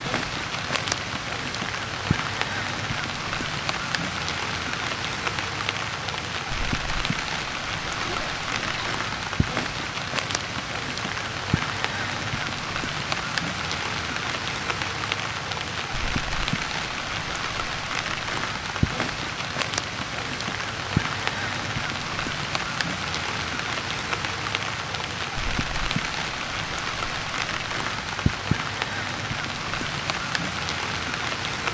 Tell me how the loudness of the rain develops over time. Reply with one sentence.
The volume of the rain stays about the same.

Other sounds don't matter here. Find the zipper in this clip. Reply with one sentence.
The zipper can be heard from 8.0 to 9.3 s.